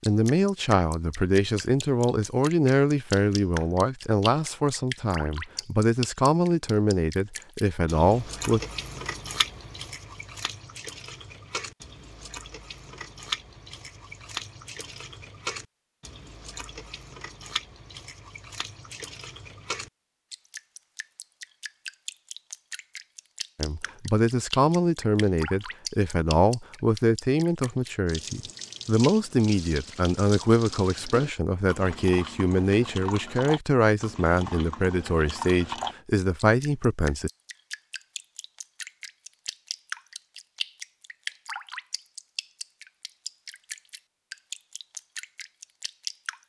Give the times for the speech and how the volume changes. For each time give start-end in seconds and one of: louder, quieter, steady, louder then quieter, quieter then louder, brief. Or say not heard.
0.0-8.6 steady
23.6-37.3 steady.